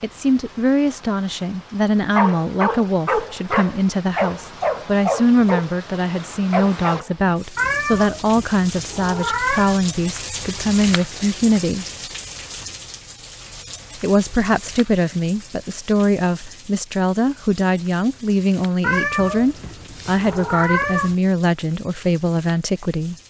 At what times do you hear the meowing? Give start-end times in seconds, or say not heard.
7.5-9.8, 18.8-21.1.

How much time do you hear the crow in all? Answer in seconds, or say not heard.
not heard.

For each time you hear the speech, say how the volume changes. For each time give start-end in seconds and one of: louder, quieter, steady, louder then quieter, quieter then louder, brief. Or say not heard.
0.0-11.8 steady
14.0-23.1 steady.